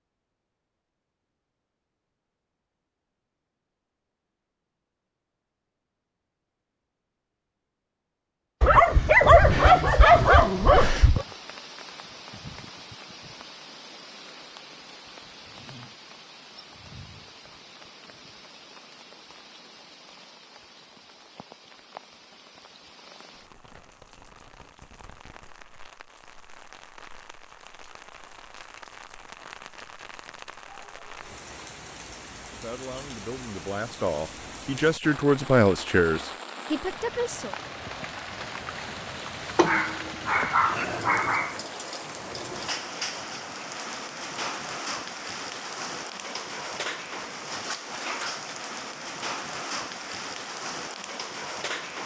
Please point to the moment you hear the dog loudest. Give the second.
9 s.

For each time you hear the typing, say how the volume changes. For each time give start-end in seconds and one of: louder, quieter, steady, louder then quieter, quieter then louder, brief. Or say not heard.
not heard.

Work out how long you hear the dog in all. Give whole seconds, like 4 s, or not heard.
5 s.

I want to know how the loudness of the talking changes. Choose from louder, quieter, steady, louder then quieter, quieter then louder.
louder then quieter.